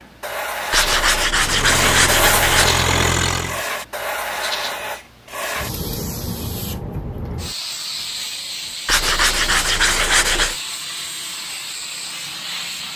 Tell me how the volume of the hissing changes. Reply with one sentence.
The volume of the hissing goes down.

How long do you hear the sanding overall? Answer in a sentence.
The sanding can be heard for 4 seconds in total.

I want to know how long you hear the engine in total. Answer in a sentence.
You can hear the engine for 2 seconds altogether.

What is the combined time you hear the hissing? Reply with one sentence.
The hissing can be heard for 13 seconds in total.